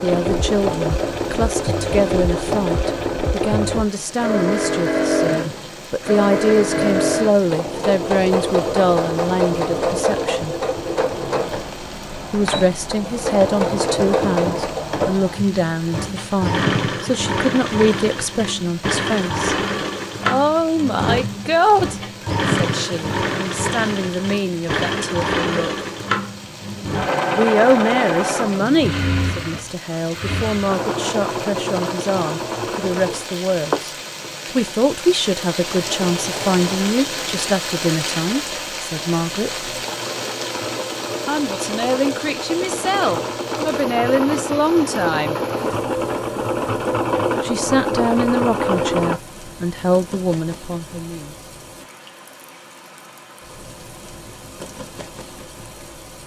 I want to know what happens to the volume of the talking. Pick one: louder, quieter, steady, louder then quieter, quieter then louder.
steady.